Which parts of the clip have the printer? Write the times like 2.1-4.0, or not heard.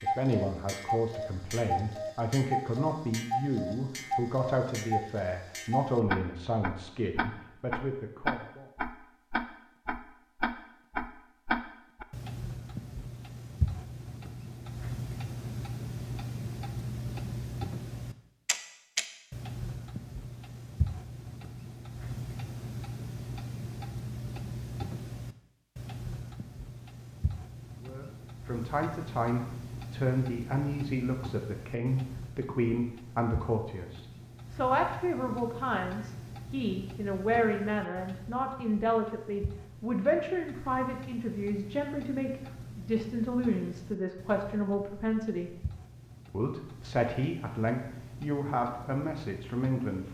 not heard.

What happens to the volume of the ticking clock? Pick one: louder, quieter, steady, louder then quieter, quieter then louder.
quieter.